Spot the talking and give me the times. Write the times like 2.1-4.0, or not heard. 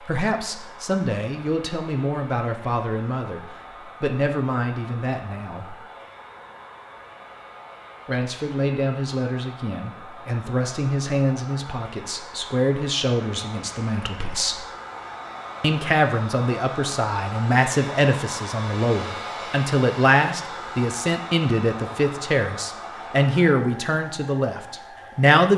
0.0-5.8, 8.1-14.7, 15.6-25.5.